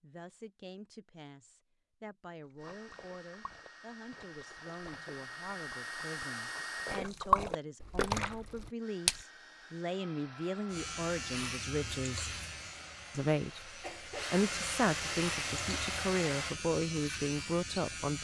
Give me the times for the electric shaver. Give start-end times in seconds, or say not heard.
10.7-18.1.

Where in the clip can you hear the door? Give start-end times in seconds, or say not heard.
not heard.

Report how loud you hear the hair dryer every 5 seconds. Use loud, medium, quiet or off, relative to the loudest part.
quiet, medium, medium, loud.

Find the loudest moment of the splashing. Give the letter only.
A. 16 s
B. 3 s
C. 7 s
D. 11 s
C.